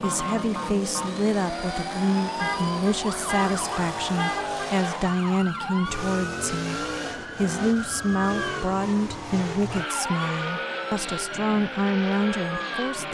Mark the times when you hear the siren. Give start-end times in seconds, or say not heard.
0.0-13.0.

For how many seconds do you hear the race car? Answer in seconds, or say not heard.
13 s.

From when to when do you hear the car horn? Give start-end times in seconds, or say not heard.
2.4-4.8.